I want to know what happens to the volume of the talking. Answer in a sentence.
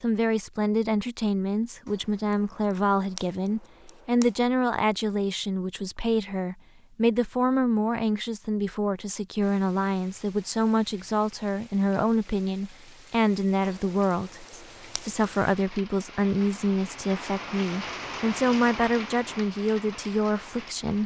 The loudness of the talking stays about the same.